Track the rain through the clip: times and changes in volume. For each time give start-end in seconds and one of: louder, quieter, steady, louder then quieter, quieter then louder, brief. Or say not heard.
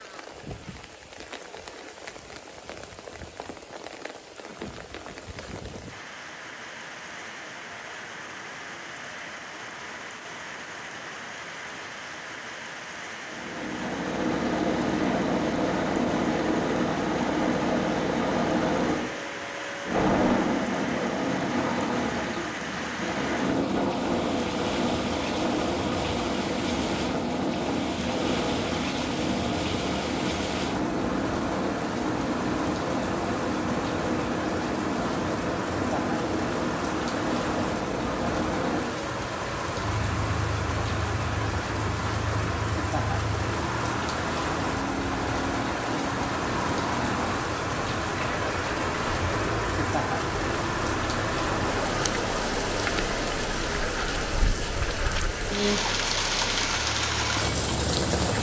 0.0-58.3 louder.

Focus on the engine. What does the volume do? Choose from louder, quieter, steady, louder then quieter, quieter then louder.
quieter.